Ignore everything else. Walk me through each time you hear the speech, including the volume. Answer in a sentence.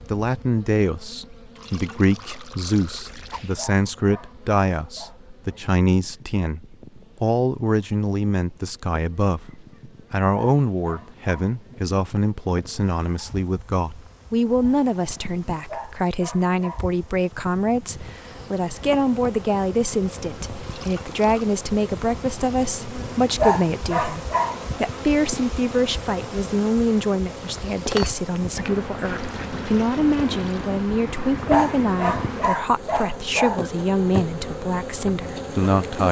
The speech can be heard from 0.1 to 36.0 s, at a steady volume.